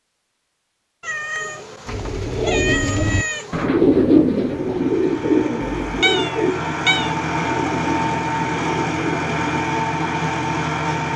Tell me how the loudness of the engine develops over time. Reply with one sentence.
The volume of the engine goes up.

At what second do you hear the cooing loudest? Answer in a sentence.
The loudest moment of the cooing is at 4 seconds.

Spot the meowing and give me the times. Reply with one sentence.
The meowing can be heard from 1.0 to 3.7 s and from 5.8 to 7.2 s.